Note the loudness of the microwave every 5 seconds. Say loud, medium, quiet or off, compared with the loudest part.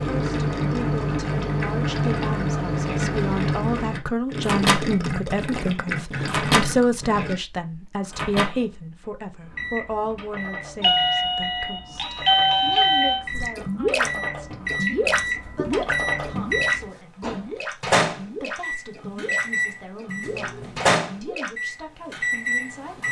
loud, loud, medium, loud, loud.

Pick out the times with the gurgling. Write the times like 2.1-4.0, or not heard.
0.0-7.4, 13.3-21.6.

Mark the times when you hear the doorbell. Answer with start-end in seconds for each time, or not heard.
10.8-13.2.